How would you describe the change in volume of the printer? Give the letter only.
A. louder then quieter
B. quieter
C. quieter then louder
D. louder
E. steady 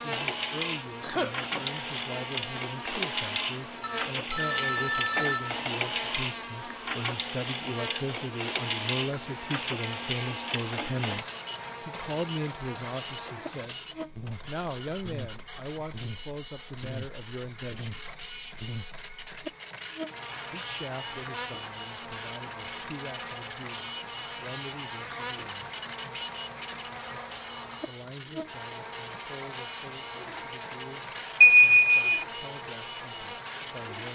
E.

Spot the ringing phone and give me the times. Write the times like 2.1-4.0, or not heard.
3.8-5.6, 31.4-32.1.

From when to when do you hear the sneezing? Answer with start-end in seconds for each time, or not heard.
1.0-1.6.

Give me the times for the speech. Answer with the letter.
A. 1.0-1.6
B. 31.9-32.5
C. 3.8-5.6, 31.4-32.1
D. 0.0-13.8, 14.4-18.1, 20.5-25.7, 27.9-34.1
D.